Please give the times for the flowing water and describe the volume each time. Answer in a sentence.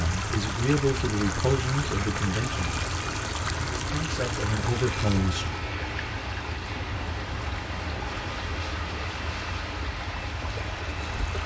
You can hear the flowing water from 0.0 to 11.4 s, getting quieter.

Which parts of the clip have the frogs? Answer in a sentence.
You can't hear the frogs here.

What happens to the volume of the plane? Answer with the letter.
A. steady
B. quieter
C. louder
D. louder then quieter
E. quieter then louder
A.